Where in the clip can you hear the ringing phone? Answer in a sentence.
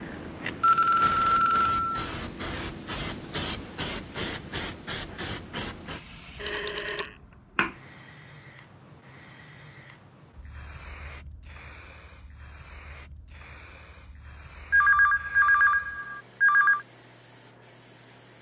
You can hear the ringing phone from 0.6 to 2.1 s, from 6.4 to 7.1 s and from 14.7 to 16.9 s.